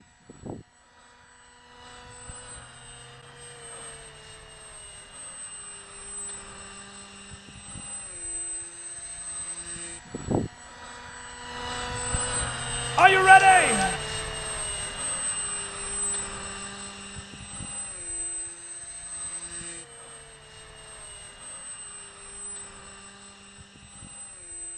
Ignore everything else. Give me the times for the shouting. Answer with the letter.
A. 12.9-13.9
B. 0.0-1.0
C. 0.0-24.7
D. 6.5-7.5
A.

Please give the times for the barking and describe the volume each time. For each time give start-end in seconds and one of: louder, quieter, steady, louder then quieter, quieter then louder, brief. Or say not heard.
not heard.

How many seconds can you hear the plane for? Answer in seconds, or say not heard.
25 s.